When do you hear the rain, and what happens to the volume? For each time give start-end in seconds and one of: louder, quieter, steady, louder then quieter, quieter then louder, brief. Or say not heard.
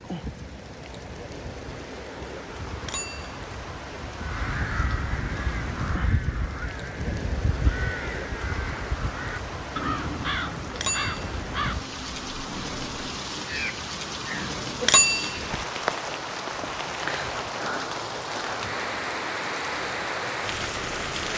0.0-21.3 louder.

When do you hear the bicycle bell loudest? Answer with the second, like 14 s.
15 s.